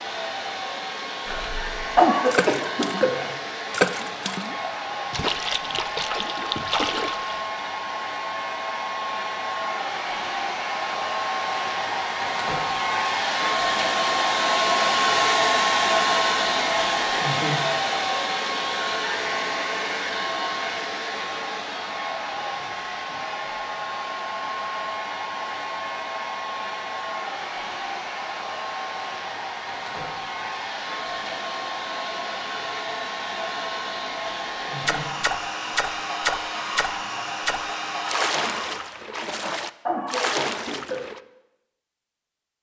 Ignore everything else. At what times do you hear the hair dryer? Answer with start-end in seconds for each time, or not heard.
0.0-39.0.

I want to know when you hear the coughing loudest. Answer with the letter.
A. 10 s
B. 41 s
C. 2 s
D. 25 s
C.